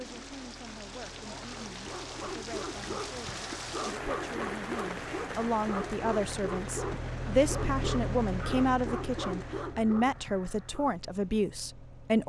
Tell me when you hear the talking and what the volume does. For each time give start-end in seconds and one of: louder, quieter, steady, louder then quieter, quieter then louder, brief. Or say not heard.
0.0-12.2 louder.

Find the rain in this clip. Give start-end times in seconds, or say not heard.
0.0-9.7.